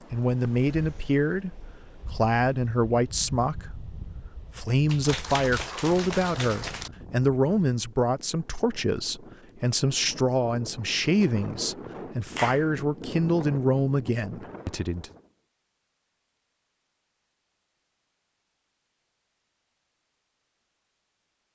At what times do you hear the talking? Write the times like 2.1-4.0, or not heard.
0.1-15.1.